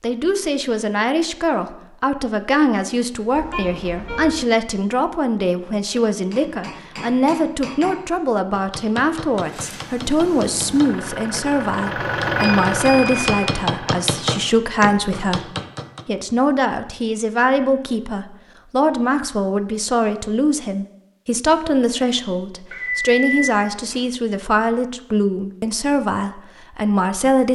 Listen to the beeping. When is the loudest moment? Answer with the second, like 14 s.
23 s.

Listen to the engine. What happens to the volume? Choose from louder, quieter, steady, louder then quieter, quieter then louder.
louder then quieter.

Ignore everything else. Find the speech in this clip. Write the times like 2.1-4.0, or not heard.
0.0-27.5.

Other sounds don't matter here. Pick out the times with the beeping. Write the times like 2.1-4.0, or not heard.
3.4-4.5, 12.3-13.6, 22.7-24.1.